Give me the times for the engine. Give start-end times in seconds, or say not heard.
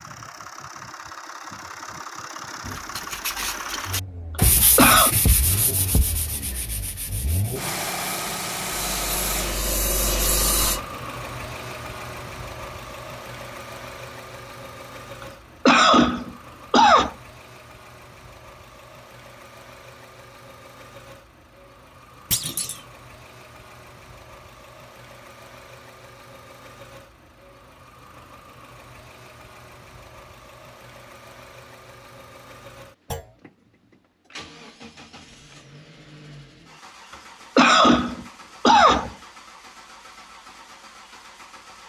0.0-41.8.